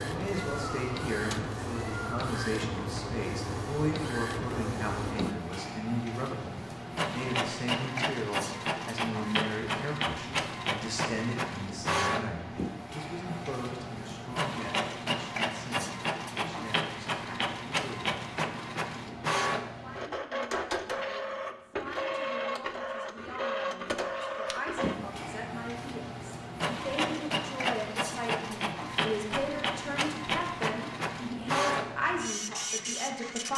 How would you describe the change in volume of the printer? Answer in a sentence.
The loudness of the printer stays about the same.